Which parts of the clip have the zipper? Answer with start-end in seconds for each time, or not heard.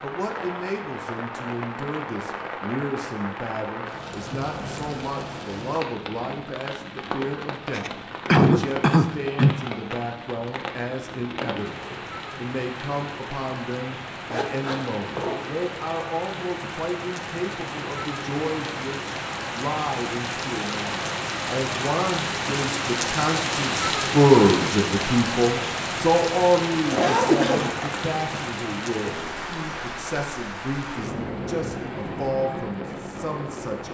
4.1-5.4, 14.2-15.6, 26.9-28.1.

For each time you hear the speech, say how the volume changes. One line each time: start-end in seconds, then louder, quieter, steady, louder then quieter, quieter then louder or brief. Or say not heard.
0.0-33.8 louder then quieter.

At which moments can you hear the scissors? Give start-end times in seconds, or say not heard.
not heard.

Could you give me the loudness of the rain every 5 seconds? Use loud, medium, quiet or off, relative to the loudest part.
medium, medium, medium, medium, loud, loud, medium.